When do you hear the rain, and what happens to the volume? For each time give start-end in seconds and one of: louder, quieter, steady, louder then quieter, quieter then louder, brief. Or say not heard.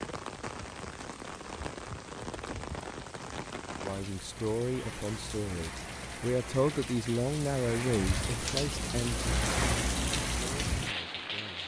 0.0-11.6 louder.